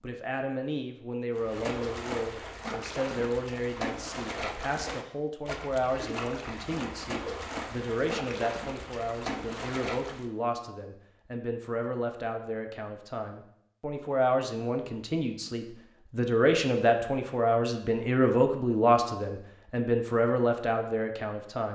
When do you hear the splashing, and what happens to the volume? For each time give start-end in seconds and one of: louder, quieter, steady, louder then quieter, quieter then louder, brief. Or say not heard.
1.4-10.3 steady.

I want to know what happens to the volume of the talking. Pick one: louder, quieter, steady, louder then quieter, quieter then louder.
louder.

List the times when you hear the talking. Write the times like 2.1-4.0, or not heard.
0.0-21.6.